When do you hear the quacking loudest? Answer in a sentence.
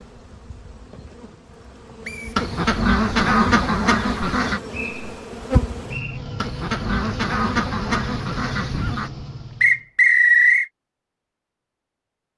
The loudest moment of the quacking is at 3 seconds.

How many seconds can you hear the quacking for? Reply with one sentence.
The quacking can be heard for 5 seconds in total.